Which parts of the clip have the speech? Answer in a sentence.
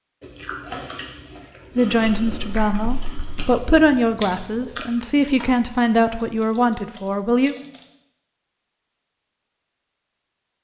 The speech can be heard from 1.8 to 7.5 s.